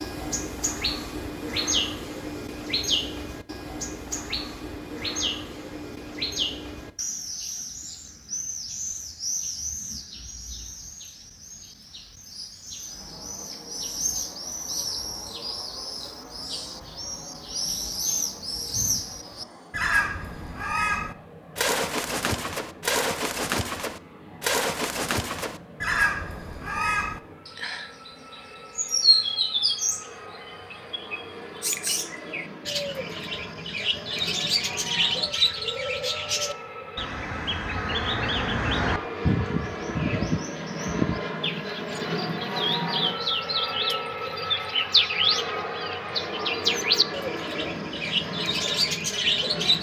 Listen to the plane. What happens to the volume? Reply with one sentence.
The loudness of the plane goes up.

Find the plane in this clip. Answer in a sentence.
You can hear the plane from 12.8 to 49.7 s.